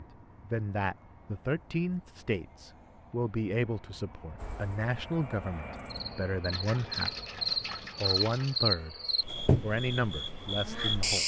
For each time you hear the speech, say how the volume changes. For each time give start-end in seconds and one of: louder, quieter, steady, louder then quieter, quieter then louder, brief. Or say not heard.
0.0-7.2 steady
8.0-8.9 brief
9.6-11.2 brief.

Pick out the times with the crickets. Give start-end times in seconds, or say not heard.
4.3-11.2.